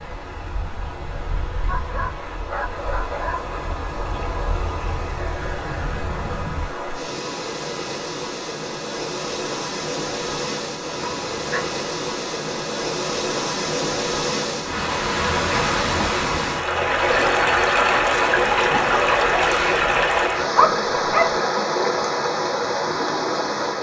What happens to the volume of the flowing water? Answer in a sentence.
The loudness of the flowing water goes up.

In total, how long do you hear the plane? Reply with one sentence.
The plane can be heard for 7 seconds in total.